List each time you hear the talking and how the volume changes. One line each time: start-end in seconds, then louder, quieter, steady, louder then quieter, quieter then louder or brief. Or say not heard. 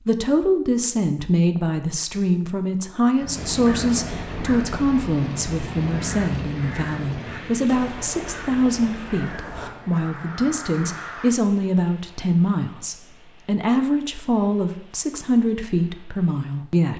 0.1-16.9 steady.